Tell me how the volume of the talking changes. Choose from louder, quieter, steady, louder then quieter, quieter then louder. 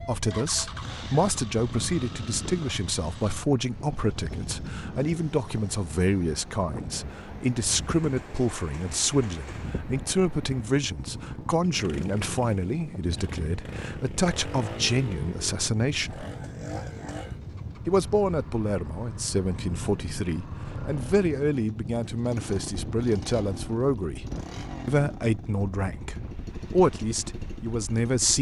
steady.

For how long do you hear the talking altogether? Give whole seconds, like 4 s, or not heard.
26 s.